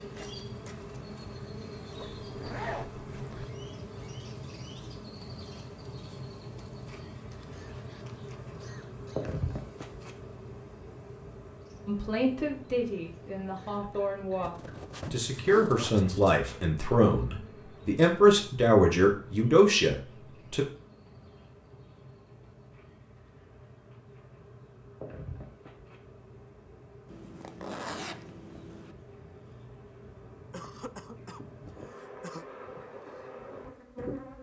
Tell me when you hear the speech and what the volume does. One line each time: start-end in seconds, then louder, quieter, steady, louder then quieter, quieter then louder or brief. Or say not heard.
11.8-20.6 louder.